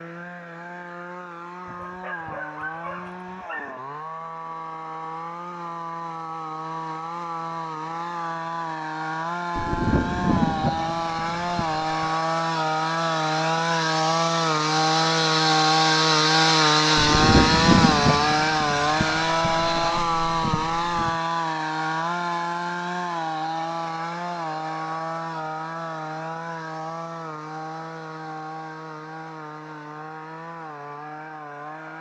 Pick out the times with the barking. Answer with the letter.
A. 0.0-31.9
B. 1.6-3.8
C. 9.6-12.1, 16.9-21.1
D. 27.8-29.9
B.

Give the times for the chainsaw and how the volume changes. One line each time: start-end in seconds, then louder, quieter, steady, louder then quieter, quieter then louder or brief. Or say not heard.
0.0-31.9 louder then quieter.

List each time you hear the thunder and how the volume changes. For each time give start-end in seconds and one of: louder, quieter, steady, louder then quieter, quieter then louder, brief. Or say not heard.
9.6-12.1 brief
16.9-21.1 quieter.